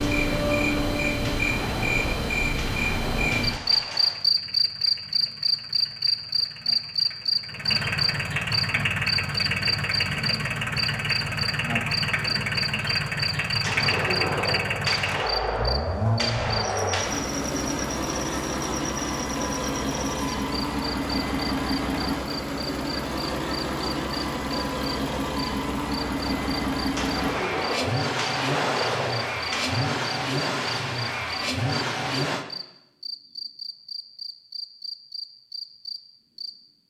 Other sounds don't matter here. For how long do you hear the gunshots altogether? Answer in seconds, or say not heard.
11 s.